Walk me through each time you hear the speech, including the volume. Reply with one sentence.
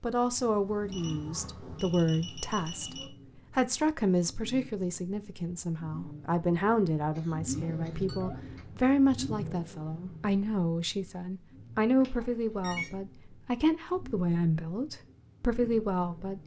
You can hear the speech from 0.0 to 16.4 s, at a steady volume.